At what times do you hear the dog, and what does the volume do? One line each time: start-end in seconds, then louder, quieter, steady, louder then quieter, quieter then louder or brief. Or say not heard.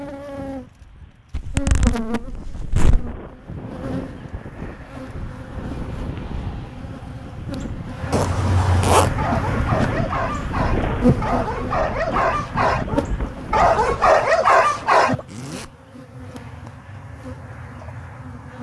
9.0-15.2 louder.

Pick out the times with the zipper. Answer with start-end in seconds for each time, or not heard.
1.3-3.1, 8.1-9.2, 15.2-15.7.